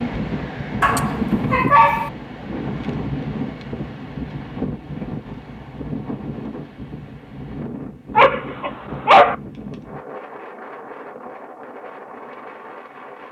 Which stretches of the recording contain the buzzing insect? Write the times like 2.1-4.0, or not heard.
not heard.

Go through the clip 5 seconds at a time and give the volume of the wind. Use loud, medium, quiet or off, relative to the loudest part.
loud, medium, medium.